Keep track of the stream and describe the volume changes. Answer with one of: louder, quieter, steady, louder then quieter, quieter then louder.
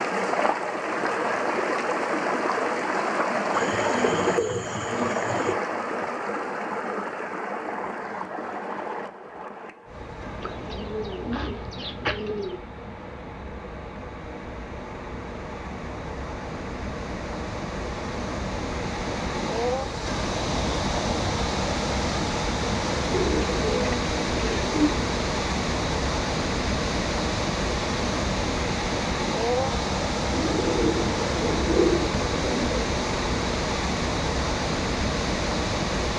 quieter then louder.